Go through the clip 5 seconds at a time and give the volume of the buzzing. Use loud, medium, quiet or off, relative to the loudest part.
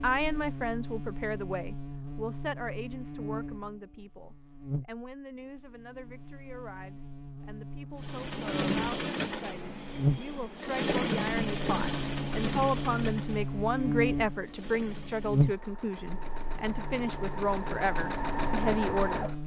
medium, medium, loud, loud.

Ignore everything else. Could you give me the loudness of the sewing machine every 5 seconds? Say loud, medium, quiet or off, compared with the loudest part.
off, loud, loud, loud.